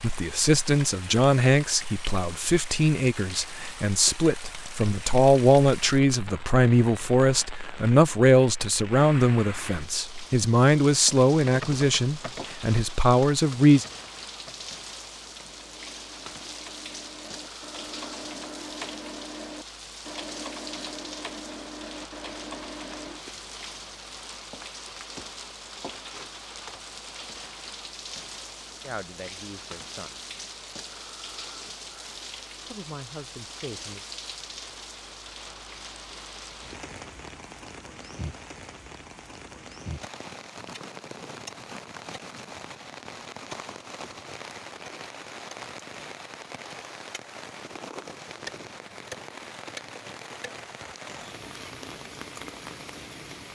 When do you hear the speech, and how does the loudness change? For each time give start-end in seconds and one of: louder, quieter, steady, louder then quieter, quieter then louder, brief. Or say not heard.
0.0-13.8 steady
28.8-30.1 brief
32.7-34.0 brief.